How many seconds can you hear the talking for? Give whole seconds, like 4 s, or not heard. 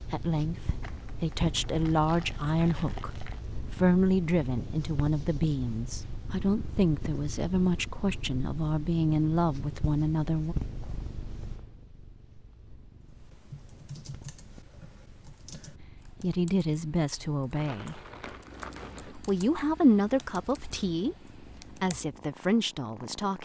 17 s.